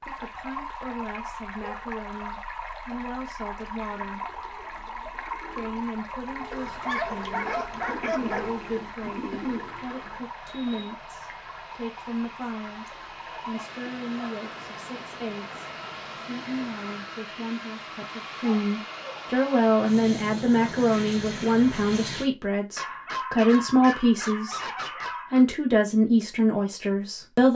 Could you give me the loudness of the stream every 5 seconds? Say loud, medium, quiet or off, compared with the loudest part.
loud, loud, medium, medium, off, off.